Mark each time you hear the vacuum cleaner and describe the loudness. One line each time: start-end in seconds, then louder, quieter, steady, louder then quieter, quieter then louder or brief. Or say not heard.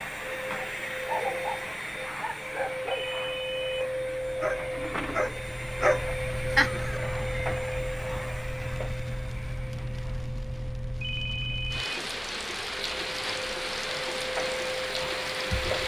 0.0-15.8 quieter then louder.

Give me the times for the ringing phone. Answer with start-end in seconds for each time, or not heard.
2.9-3.9, 11.0-12.0.